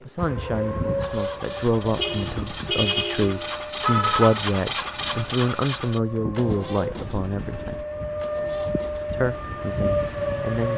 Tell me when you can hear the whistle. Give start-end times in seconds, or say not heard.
not heard.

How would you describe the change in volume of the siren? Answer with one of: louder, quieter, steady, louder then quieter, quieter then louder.
quieter then louder.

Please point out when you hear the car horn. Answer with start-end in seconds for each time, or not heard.
1.9-4.4.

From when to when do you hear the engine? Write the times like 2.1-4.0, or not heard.
0.0-10.5.